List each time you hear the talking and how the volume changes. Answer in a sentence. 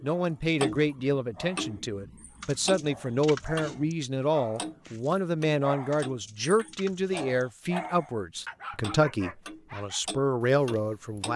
The talking can be heard from 0.0 to 11.3 s, at a steady volume.